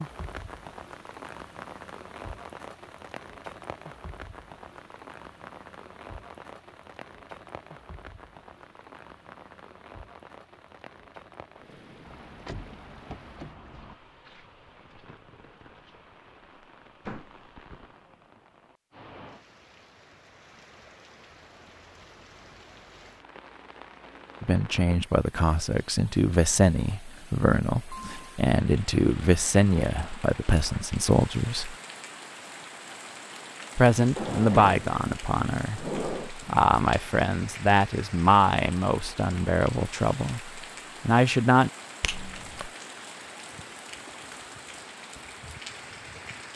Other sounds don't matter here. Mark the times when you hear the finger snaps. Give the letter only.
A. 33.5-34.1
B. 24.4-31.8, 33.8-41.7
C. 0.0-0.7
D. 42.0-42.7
D.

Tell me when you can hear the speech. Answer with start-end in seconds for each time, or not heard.
24.4-31.8, 33.8-41.7.